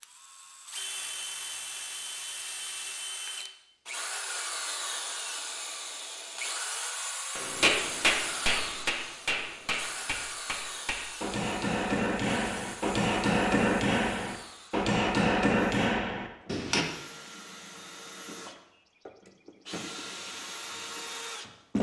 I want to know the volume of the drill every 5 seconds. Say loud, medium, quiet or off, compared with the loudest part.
loud, loud, medium, medium, loud.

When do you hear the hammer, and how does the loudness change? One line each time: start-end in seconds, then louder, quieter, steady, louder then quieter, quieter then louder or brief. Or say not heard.
7.3-16.9 quieter then louder.